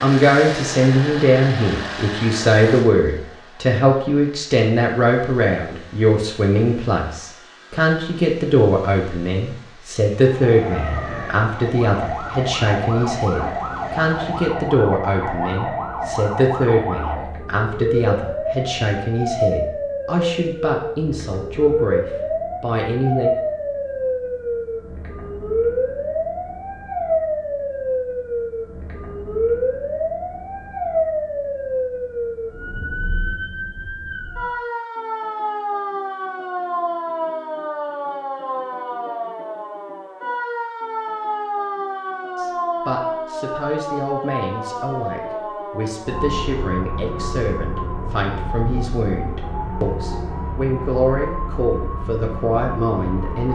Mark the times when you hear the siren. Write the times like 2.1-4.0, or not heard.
10.2-53.5.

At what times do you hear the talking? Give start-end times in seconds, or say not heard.
0.0-23.3, 42.4-53.5.